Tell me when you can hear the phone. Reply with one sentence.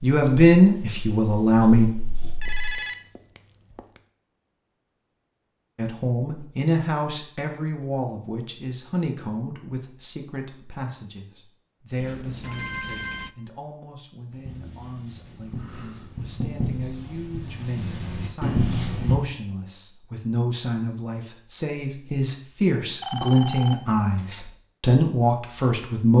The phone can be heard from 2.4 to 4.0 s, from 12.0 to 13.3 s and from 23.0 to 24.5 s.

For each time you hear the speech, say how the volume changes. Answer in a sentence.
You can hear the speech briefly from 0.0 to 1.9 s; and from 5.8 to 26.1 s, getting quieter then louder.